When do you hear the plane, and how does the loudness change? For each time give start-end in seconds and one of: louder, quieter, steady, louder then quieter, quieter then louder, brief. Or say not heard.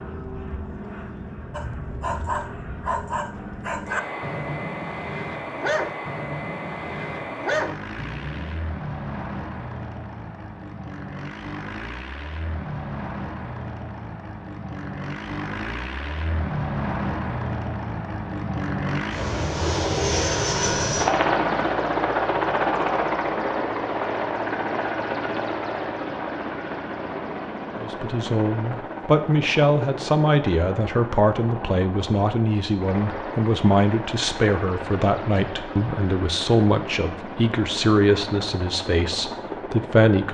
0.0-40.2 louder then quieter.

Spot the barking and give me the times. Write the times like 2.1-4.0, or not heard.
1.5-8.6.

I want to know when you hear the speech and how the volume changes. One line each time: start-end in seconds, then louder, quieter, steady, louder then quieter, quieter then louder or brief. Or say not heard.
27.8-40.2 steady.